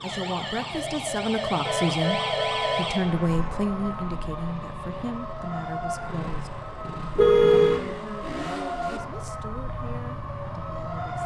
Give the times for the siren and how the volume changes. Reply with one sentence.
The siren can be heard from 0.0 to 11.2 s, getting quieter.